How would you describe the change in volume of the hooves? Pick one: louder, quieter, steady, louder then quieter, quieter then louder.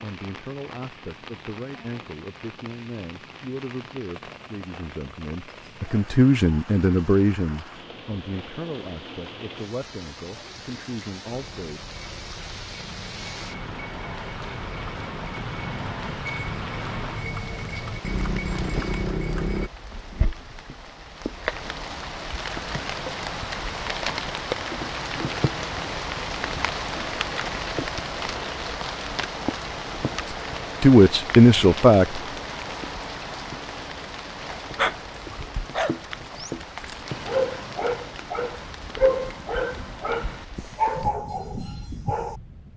louder.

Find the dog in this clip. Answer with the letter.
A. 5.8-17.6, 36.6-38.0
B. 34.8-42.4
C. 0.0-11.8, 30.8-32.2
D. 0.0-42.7
B.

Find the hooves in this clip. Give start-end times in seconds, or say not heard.
11.3-19.7.